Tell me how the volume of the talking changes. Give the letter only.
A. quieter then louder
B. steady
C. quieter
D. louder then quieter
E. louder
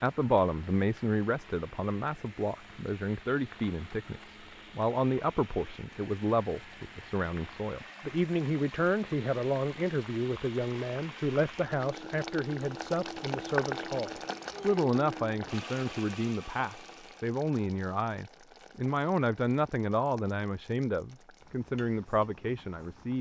B.